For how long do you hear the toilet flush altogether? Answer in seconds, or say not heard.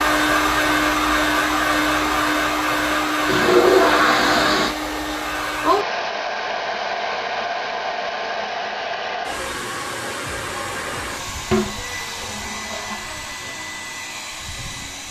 3 s.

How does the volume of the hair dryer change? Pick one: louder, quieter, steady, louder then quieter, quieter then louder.
quieter.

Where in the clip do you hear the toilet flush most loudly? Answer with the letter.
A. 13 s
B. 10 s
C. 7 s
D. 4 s
D.